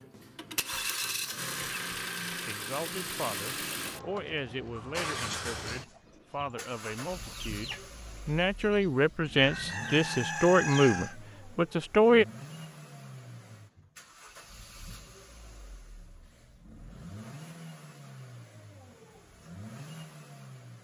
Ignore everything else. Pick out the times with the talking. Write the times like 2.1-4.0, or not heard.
2.3-12.2.